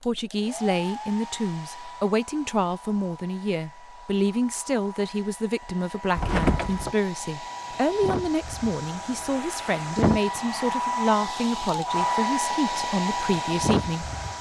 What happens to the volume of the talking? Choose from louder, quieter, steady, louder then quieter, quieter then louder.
steady.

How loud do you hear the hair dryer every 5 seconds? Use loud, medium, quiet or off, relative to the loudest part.
quiet, medium, loud.